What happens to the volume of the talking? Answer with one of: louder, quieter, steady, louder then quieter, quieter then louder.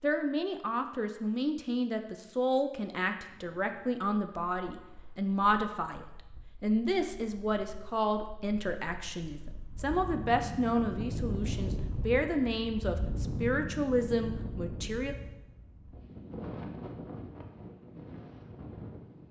steady.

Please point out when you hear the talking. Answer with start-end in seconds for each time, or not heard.
0.0-15.2.